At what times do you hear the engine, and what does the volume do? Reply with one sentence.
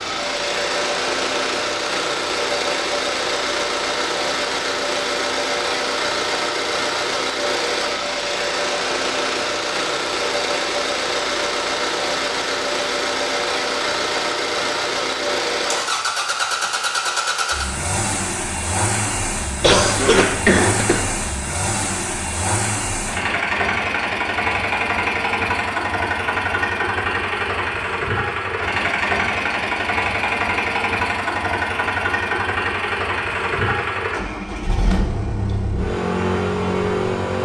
You can hear the engine from 0.0 to 37.3 s, at a steady volume.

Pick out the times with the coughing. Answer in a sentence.
You can hear the coughing from 19.6 to 21.1 s.